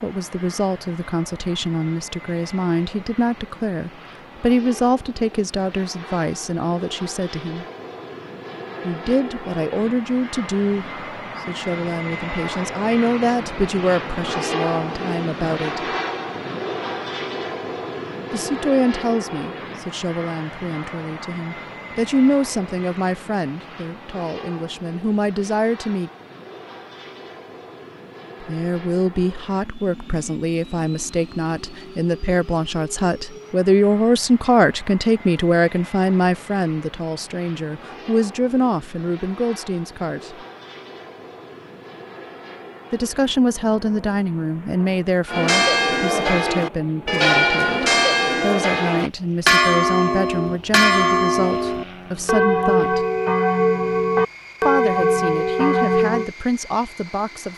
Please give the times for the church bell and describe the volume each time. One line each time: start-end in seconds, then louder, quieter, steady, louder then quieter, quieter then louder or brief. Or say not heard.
45.2-56.3 steady.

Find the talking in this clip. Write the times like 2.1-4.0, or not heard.
0.0-7.7, 8.8-15.8, 18.3-26.1, 28.4-40.4, 42.9-53.0, 54.6-57.5.